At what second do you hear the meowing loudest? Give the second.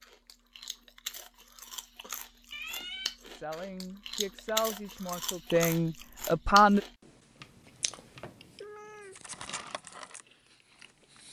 3 s.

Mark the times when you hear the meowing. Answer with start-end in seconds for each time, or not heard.
2.5-3.1, 7.3-9.3.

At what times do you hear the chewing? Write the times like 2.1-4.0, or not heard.
0.0-11.2.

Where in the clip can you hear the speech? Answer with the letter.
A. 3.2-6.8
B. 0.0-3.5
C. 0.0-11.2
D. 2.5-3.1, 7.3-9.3
A.